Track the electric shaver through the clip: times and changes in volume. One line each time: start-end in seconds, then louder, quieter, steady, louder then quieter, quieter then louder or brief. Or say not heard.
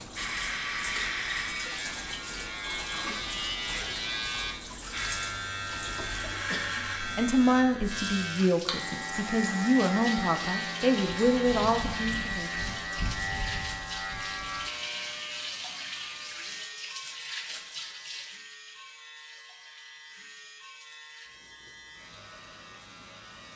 0.0-23.5 quieter.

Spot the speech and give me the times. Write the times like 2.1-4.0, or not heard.
7.2-12.5.